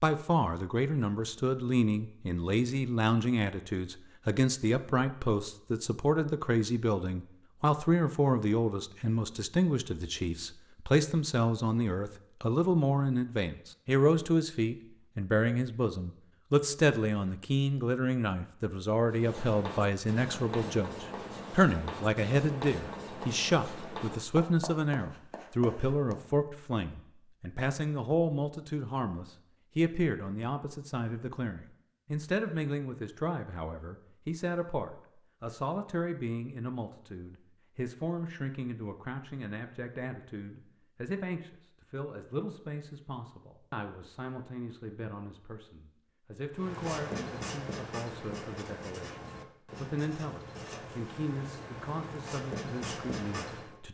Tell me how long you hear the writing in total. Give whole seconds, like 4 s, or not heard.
14 s.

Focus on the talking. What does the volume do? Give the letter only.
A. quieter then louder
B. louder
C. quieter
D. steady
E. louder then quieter
C.